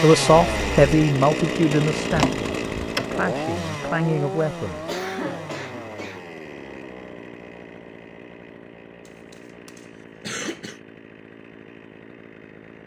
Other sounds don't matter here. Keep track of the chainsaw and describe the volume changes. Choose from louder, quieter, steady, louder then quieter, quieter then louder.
quieter.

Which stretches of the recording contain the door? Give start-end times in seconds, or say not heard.
2.1-3.1.